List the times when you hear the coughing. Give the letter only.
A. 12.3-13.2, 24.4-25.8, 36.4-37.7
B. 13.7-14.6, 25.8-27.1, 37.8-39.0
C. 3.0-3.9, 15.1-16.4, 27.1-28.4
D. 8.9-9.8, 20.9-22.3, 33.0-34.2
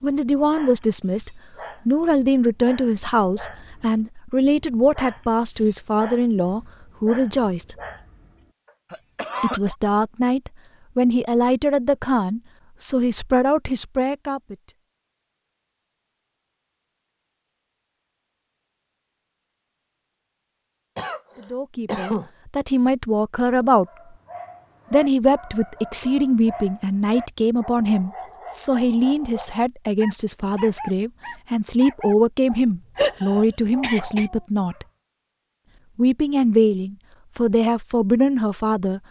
D.